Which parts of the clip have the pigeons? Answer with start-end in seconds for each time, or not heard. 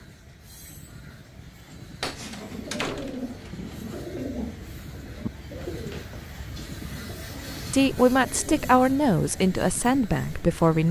2.1-8.7.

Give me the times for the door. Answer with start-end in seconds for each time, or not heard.
2.0-3.3.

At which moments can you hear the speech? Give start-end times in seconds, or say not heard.
7.7-10.8.